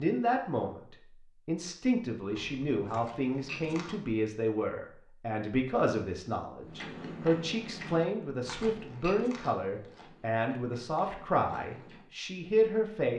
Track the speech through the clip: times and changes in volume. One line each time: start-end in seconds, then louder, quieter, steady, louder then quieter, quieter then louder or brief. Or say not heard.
0.0-13.1 steady.